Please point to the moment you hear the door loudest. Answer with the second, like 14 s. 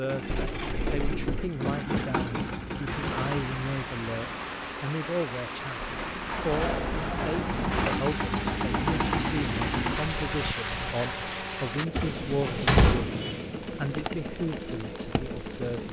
13 s.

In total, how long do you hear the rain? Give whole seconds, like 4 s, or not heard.
13 s.